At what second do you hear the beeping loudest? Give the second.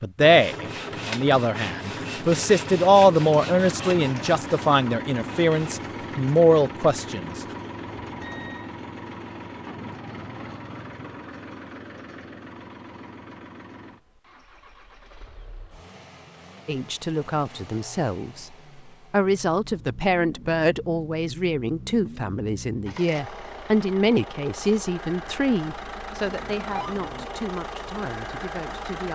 27 s.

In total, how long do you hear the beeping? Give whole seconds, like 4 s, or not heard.
2 s.